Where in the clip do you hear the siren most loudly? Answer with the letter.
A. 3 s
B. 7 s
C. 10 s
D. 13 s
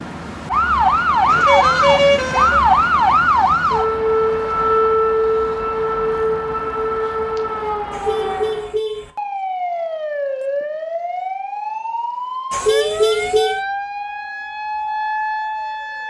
A.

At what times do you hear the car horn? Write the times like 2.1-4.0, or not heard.
1.2-2.6, 7.9-9.1, 12.5-13.6.